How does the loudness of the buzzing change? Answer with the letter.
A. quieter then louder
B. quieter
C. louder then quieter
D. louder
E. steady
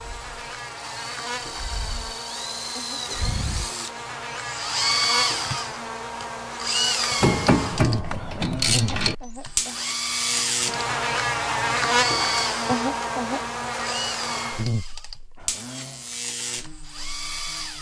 C.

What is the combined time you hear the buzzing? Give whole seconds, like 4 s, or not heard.
18 s.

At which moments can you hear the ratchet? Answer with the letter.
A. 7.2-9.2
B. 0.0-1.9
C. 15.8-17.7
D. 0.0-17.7
A.